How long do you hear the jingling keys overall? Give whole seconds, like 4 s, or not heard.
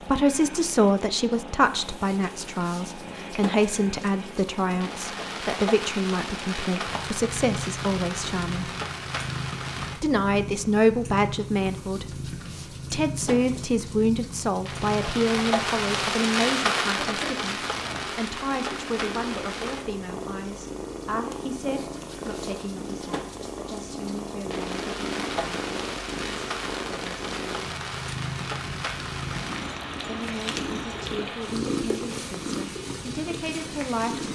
2 s.